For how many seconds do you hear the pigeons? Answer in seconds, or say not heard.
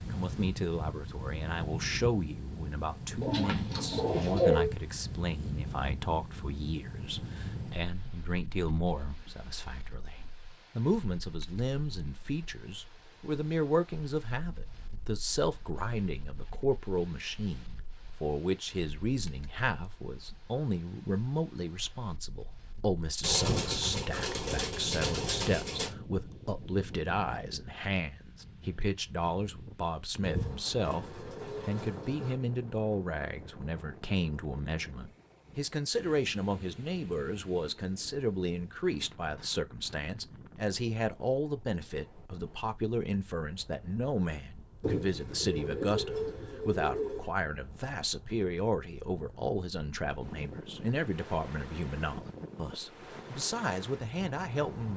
9 s.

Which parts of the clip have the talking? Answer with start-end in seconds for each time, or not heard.
0.0-54.9.